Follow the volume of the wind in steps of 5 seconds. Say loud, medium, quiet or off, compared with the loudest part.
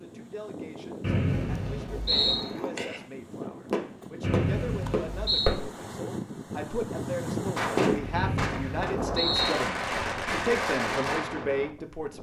medium, loud, medium.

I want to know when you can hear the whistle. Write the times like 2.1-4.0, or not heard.
1.0-2.5, 4.2-5.5, 8.1-9.6.